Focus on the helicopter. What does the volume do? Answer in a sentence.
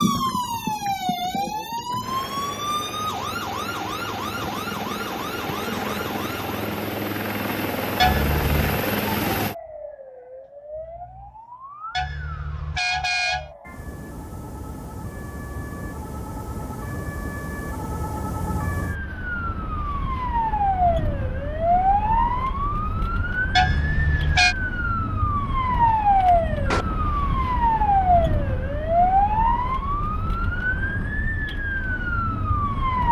The loudness of the helicopter goes up.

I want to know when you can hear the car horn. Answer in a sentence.
The car horn can be heard from 8.0 to 8.8 s, from 11.9 to 13.5 s and from 23.6 to 24.6 s.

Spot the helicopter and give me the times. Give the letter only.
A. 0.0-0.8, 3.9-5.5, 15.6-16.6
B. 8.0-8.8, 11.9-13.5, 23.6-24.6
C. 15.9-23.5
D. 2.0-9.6
D.